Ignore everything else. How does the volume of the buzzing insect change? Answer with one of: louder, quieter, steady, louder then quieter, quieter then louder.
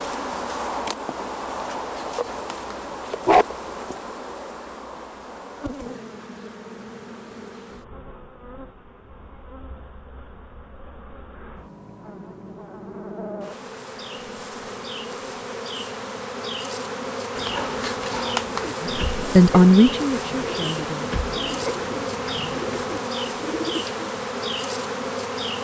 quieter then louder.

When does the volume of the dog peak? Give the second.
3 s.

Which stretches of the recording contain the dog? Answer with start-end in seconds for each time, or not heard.
1.8-3.5, 17.4-18.7.